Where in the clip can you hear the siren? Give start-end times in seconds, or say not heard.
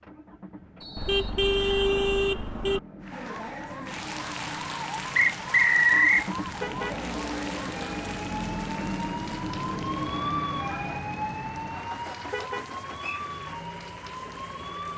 3.1-14.9.